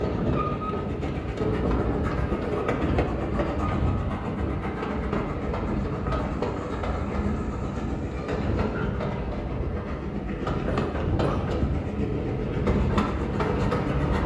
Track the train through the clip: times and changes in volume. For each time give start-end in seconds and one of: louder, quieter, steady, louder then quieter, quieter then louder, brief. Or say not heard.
0.0-14.2 steady.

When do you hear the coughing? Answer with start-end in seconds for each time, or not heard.
10.7-11.6.